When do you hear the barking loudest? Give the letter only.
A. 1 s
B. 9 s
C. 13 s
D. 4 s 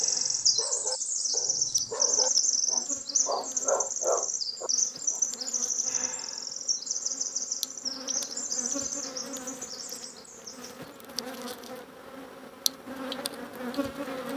D.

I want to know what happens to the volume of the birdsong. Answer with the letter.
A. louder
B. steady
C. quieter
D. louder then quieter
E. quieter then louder
C.